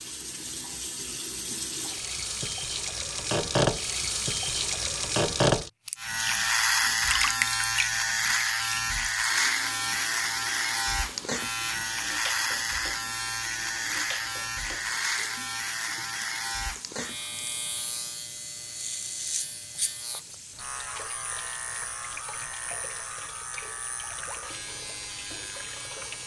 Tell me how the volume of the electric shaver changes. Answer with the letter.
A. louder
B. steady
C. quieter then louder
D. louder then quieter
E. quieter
E.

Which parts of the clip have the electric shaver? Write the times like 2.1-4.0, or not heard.
6.0-26.2.